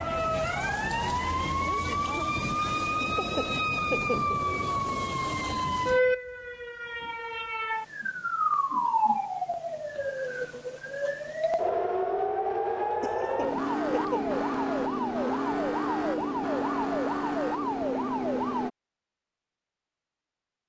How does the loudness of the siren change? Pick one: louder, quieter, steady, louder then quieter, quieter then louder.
steady.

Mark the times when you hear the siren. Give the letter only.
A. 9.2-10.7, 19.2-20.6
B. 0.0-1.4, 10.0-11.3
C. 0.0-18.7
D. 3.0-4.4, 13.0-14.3
C.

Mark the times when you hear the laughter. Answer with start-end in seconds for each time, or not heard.
3.0-4.4, 13.0-14.3.